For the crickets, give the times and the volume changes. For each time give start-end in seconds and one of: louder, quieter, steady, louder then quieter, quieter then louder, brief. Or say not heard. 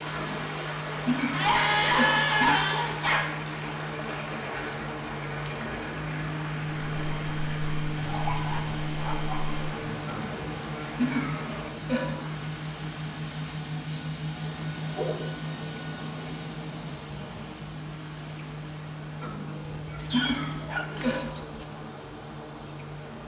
6.7-23.2 louder.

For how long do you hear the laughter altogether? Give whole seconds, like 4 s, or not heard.
7 s.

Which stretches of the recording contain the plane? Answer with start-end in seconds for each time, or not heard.
0.0-23.2.